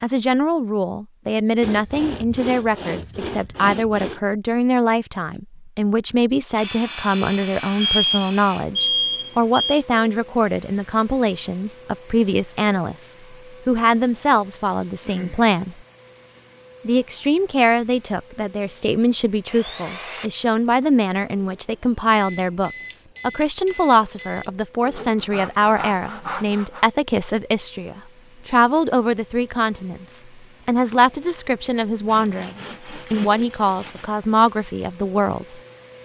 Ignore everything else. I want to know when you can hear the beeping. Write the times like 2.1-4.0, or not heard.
7.8-9.8, 22.1-24.5.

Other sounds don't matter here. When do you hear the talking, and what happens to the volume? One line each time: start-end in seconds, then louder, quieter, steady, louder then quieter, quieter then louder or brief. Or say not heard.
0.0-15.8 steady
16.9-35.6 steady.